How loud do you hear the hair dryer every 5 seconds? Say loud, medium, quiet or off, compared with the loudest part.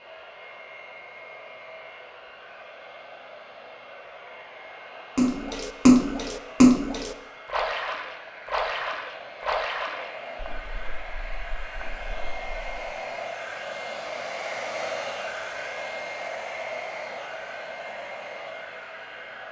medium, medium, loud, loud.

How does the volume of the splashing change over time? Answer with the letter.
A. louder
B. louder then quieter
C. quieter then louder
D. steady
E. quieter
E.